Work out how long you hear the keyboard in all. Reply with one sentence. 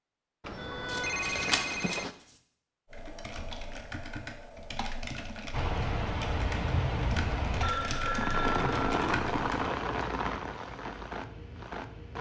The keyboard can be heard for 7 seconds in total.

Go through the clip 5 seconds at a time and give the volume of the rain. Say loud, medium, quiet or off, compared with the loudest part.
off, loud, medium.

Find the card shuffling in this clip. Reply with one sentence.
You can hear the card shuffling from 0.8 to 2.4 s.